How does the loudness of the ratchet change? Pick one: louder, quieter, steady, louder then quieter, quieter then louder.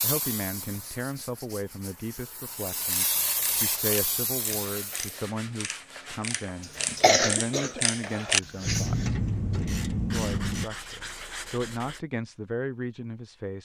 louder.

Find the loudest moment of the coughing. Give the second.
7 s.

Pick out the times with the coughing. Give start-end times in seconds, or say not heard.
6.6-9.1.